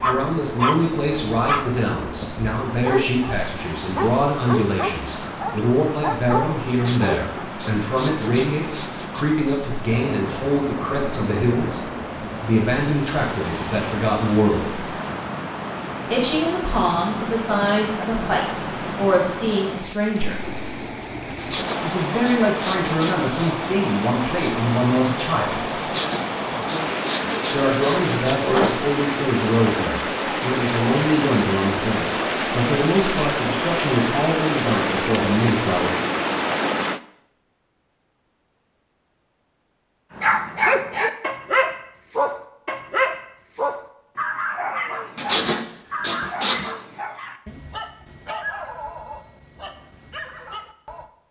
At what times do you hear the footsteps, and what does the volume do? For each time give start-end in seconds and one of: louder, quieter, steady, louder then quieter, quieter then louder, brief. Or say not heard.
not heard.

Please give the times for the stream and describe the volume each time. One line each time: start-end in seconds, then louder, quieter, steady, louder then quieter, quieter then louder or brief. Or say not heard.
0.0-37.0 louder.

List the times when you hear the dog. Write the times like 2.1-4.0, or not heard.
0.0-7.5, 40.1-51.1.